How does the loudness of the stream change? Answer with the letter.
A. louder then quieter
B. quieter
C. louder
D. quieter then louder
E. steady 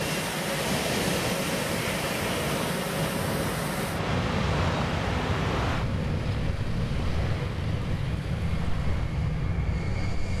B.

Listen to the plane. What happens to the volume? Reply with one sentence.
The loudness of the plane stays about the same.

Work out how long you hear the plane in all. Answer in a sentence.
The plane can be heard for 10 seconds in total.